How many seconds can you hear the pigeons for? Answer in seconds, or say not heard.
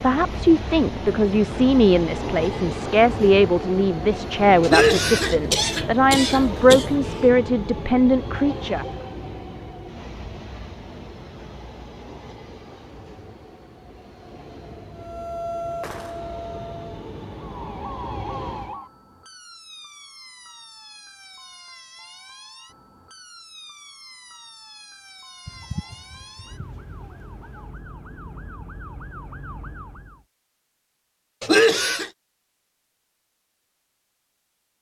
2 s.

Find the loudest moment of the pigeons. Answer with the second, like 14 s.
26 s.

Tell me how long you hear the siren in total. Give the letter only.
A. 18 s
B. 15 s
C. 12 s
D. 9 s
B.